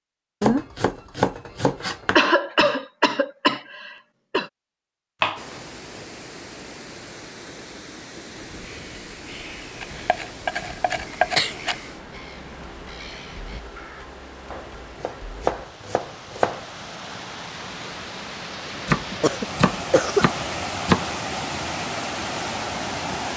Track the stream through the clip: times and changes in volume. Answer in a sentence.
You can hear the stream from 5.3 to 23.3 s, getting louder.